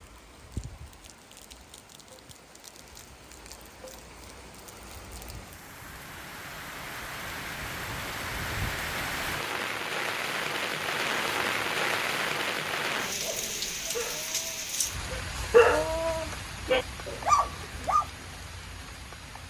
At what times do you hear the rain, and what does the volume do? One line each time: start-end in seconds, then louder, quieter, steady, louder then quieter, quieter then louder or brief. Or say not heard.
0.0-19.4 louder then quieter.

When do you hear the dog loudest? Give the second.
16 s.